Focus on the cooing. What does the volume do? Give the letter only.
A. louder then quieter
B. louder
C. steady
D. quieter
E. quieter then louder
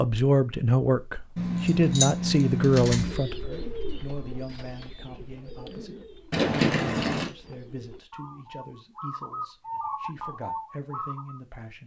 E.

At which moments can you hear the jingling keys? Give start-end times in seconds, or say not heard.
1.4-3.1, 6.3-7.3.